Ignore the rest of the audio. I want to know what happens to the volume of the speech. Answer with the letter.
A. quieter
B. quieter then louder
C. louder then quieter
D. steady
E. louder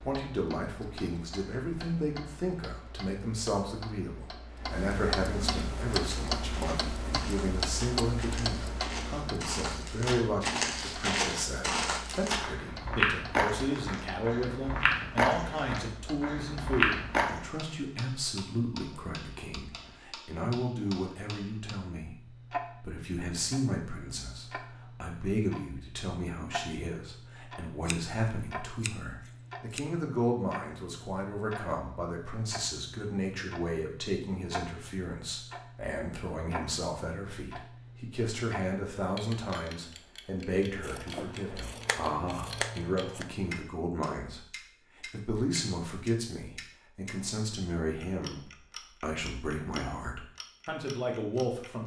D.